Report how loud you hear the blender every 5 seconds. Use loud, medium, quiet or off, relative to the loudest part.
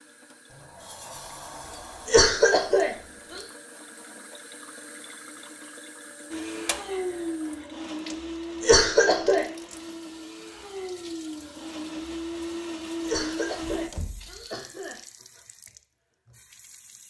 off, loud, loud, off.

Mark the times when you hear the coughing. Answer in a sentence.
The coughing can be heard from 2.0 to 3.4 s, from 8.6 to 9.4 s and from 13.0 to 15.0 s.